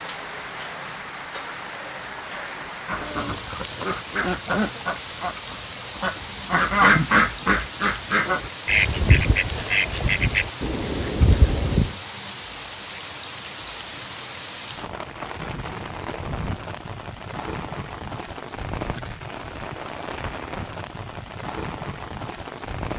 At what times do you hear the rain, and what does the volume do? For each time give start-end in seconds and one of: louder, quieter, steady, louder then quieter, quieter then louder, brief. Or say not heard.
0.0-22.9 steady.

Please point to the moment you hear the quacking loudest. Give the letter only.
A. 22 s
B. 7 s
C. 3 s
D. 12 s
B.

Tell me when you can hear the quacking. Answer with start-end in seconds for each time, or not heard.
2.9-11.9.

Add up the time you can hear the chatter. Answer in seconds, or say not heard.
not heard.